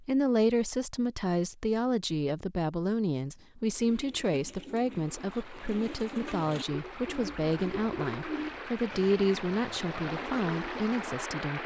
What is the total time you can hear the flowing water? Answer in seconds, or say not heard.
7 s.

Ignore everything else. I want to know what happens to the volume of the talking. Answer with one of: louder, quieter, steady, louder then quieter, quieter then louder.
steady.